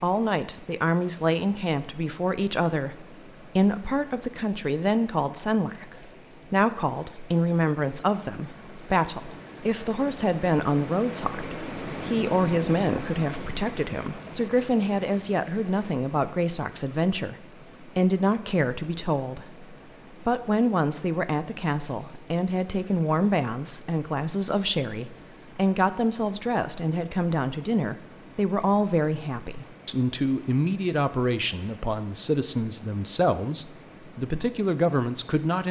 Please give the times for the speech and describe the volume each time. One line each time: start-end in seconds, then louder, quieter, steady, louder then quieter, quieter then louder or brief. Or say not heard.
0.0-35.6 steady.